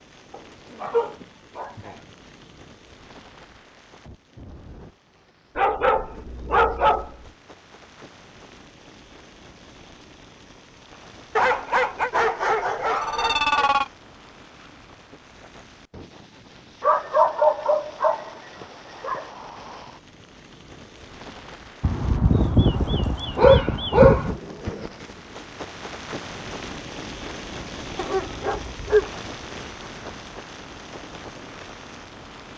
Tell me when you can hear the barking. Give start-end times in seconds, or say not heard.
0.3-1.9, 5.5-7.3, 11.3-13.9, 16.8-19.2, 21.8-24.4, 27.9-29.1.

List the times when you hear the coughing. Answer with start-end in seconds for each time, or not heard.
not heard.